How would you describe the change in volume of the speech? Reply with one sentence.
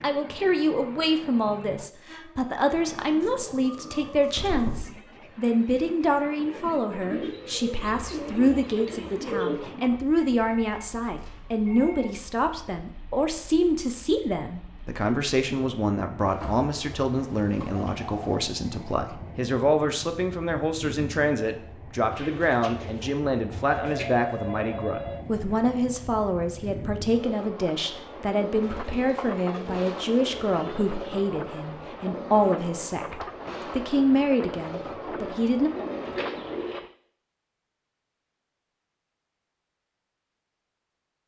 The volume of the speech stays about the same.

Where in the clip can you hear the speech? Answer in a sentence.
The speech can be heard from 0.0 to 35.7 s.